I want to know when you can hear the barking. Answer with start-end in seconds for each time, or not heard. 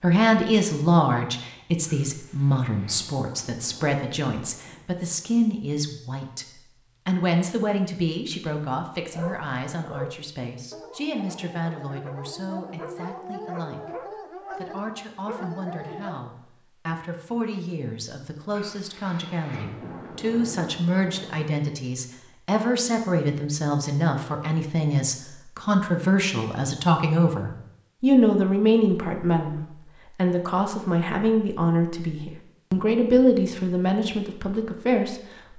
9.0-16.2.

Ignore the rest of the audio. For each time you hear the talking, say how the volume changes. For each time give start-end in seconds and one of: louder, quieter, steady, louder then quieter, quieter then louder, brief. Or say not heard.
0.0-13.8 quieter
14.5-35.5 louder.